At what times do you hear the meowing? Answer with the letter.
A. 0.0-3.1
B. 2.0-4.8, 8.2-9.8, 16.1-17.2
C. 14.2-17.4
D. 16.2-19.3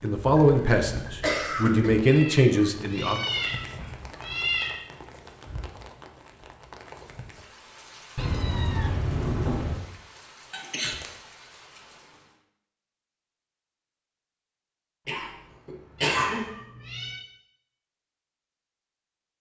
B.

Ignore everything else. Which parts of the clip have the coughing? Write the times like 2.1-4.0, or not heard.
0.2-1.9, 10.5-11.2, 15.1-16.4.